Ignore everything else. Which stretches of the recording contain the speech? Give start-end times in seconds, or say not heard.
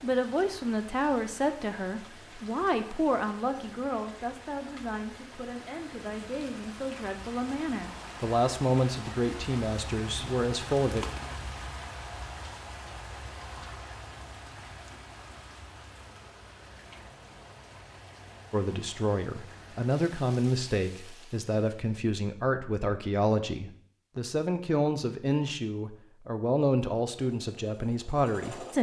0.0-11.1, 18.5-28.7.